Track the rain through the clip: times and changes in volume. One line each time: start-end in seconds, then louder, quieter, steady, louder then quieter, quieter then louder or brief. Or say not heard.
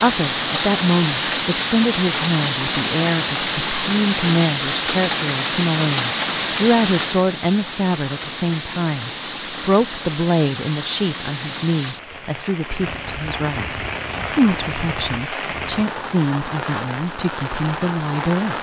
0.0-18.5 quieter.